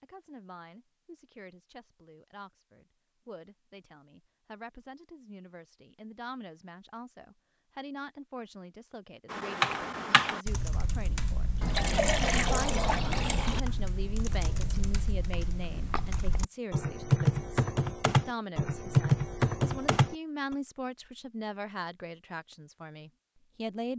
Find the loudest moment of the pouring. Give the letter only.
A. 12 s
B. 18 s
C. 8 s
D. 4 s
A.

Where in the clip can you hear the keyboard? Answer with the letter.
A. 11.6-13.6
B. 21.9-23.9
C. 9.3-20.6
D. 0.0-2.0
C.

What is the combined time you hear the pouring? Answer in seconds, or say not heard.
2 s.